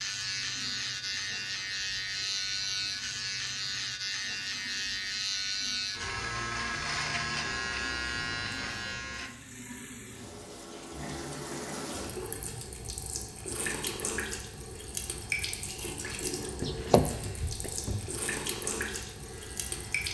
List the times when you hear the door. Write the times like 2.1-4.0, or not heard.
16.6-18.1.